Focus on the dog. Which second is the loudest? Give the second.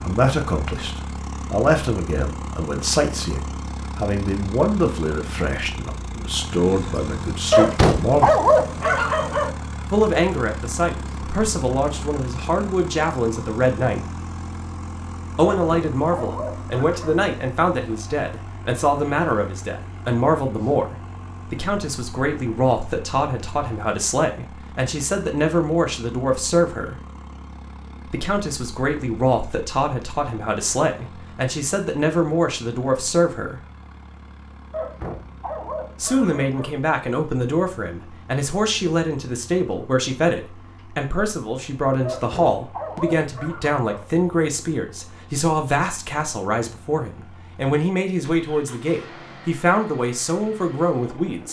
8 s.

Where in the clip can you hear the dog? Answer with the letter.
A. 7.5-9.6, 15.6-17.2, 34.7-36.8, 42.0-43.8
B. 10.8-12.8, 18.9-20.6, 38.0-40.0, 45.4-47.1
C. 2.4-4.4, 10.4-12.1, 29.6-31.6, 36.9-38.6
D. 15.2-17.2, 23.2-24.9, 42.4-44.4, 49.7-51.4
A.